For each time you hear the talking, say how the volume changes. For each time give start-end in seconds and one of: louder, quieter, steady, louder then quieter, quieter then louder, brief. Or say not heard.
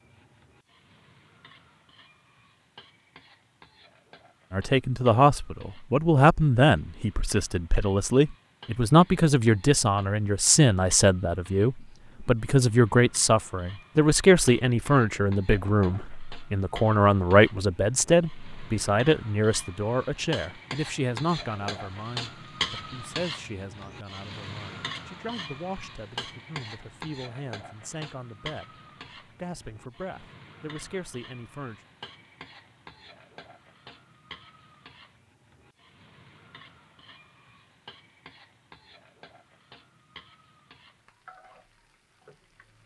4.5-31.8 quieter.